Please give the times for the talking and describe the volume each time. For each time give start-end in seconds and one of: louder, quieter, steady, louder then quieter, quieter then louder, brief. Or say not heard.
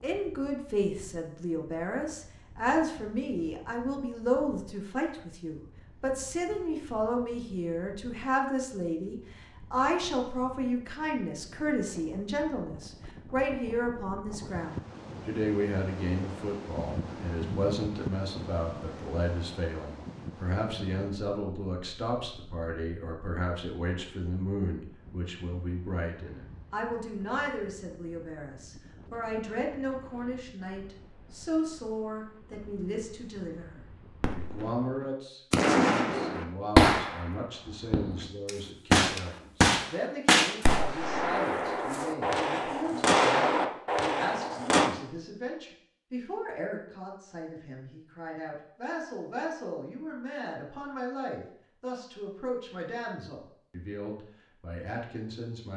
0.0-55.7 quieter.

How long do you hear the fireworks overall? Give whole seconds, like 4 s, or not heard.
10 s.